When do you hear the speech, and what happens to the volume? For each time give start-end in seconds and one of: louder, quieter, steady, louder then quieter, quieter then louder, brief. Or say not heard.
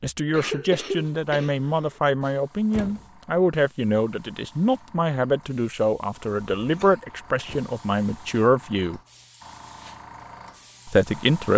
0.0-9.0 steady
10.8-11.5 brief.